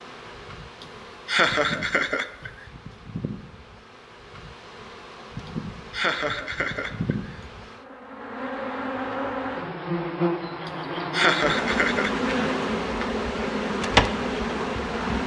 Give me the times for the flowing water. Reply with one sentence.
The flowing water can't be heard in this clip.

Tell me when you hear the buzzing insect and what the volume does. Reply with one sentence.
The buzzing insect can be heard from 0.0 to 15.2 s, getting louder.